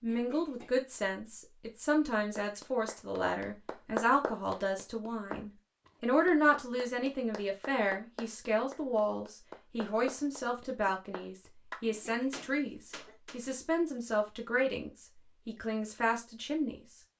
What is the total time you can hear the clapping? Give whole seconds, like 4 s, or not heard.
11 s.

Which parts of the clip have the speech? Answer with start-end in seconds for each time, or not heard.
0.0-17.0.